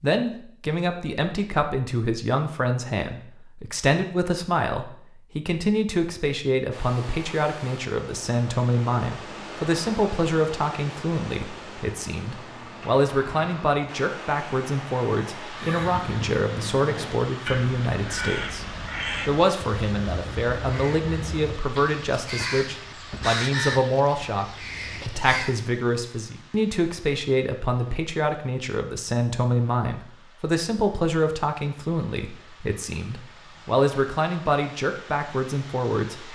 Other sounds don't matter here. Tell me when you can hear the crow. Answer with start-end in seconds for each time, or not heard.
15.5-25.6.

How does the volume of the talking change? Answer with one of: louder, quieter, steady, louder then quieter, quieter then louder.
steady.